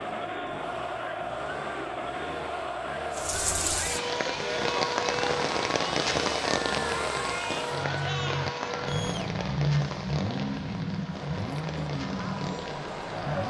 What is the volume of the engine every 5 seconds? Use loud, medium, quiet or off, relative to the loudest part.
medium, loud, loud.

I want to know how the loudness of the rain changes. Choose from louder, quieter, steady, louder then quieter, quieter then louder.
quieter.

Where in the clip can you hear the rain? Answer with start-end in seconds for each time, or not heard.
3.1-13.4.